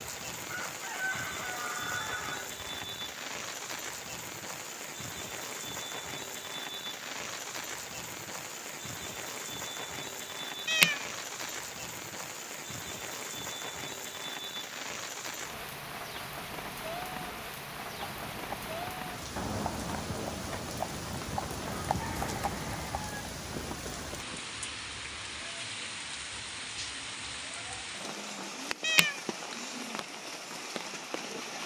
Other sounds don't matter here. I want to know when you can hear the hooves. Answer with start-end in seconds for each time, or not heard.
17.8-24.7.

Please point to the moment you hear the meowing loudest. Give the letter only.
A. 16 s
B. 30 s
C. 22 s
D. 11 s
D.